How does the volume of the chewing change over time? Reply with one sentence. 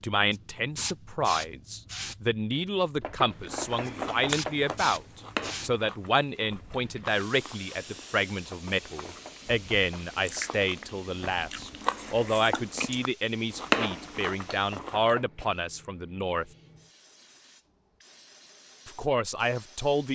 The volume of the chewing goes down, then up.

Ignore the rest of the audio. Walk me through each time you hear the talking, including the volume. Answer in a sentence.
The talking can be heard from 0.0 to 16.5 s, at a steady volume; and briefly from 18.9 to 20.1 s.